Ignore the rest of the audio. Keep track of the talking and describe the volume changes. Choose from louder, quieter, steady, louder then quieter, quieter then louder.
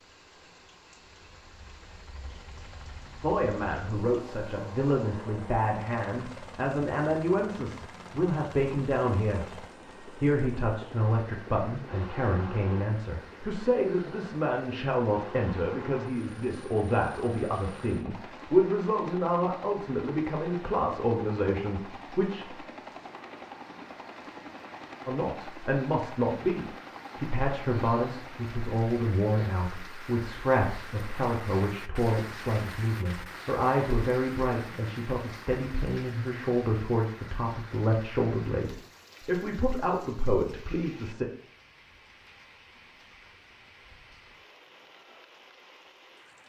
steady.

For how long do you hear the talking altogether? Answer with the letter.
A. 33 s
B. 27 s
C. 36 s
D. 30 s
C.